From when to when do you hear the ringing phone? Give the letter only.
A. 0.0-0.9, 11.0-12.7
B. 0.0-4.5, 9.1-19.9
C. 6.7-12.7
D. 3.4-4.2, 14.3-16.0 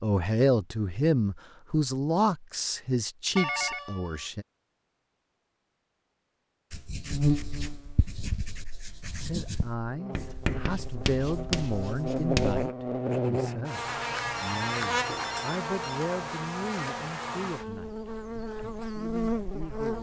D.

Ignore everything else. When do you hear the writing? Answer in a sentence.
The writing can be heard from 6.7 to 12.7 s.